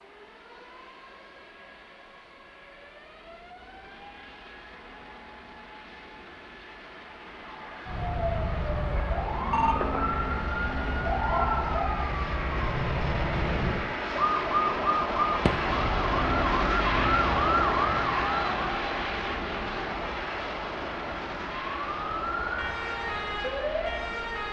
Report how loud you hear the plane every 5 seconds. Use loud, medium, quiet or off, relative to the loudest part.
quiet, quiet, medium, loud, medium.